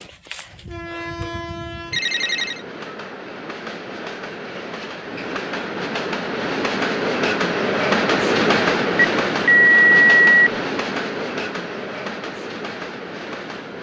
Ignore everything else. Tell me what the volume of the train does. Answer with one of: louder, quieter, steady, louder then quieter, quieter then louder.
louder then quieter.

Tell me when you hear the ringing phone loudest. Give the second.
10 s.